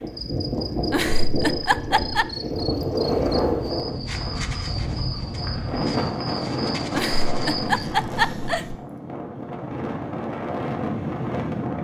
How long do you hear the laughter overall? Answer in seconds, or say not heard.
3 s.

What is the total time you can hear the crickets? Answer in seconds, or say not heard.
8 s.